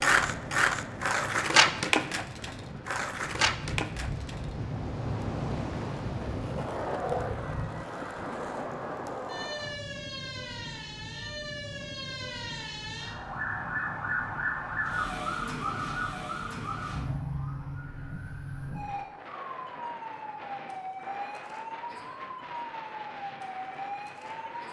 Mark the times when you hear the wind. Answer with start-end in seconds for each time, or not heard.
0.1-24.6.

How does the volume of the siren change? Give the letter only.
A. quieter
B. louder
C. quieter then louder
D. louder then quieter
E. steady
D.